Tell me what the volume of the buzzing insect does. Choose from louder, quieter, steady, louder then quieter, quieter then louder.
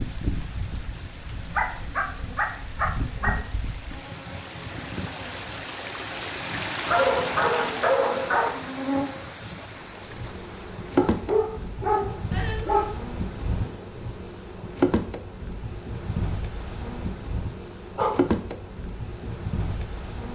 louder.